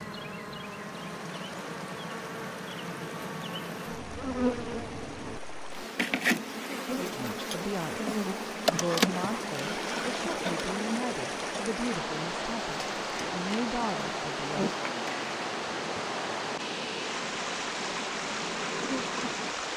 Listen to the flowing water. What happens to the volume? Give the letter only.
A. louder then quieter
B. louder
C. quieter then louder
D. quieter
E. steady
B.